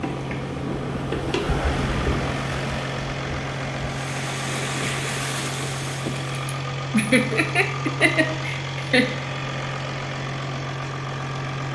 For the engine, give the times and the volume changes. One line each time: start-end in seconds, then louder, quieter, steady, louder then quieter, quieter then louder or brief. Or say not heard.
0.0-11.7 steady.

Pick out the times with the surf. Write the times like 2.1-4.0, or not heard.
0.0-6.3.